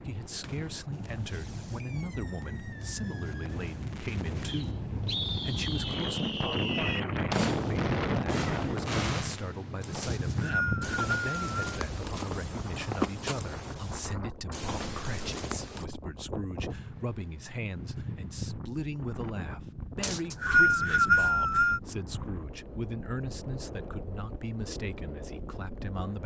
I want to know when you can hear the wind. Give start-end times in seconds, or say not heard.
0.0-26.2.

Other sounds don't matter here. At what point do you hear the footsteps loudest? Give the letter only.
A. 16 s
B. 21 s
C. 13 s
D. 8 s
C.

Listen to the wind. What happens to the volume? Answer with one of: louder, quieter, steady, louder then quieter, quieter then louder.
louder then quieter.